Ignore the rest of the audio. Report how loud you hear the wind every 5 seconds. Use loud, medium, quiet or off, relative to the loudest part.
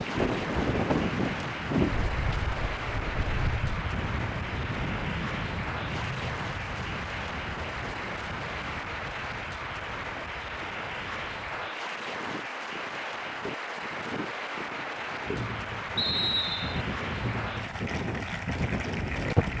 loud, medium, quiet, loud.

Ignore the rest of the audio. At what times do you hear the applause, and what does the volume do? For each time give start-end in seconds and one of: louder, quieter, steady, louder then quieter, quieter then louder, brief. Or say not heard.
0.0-19.5 steady.